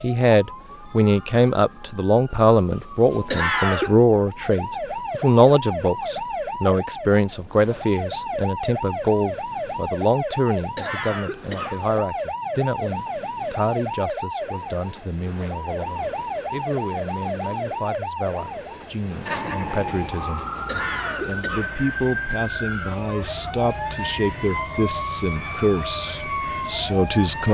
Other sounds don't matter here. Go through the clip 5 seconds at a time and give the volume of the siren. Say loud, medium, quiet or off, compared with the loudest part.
medium, loud, loud, loud, loud, loud.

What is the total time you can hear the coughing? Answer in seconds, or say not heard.
3 s.